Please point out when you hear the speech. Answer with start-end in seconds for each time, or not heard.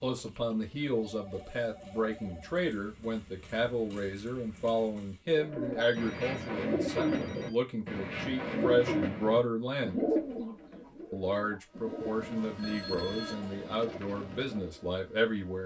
0.0-10.1, 11.1-15.6.